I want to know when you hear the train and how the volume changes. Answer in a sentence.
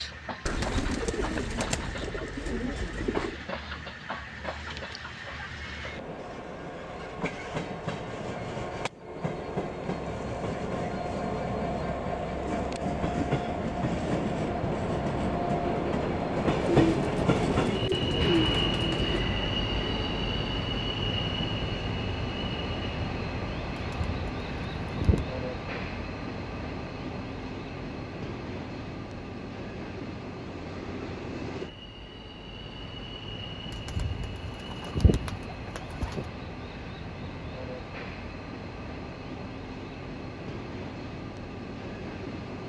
The train can be heard from 0.0 to 42.6 s, getting louder then quieter.